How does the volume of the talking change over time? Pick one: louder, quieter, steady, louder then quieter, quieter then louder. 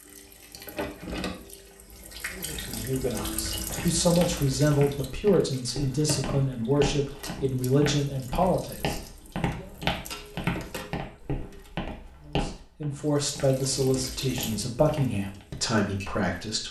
steady.